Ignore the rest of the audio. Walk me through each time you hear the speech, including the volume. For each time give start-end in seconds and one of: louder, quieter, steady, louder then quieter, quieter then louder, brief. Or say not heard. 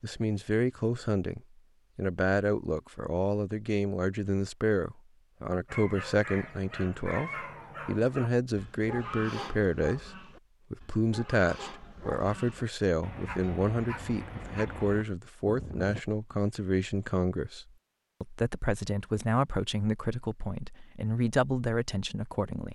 0.0-22.6 steady.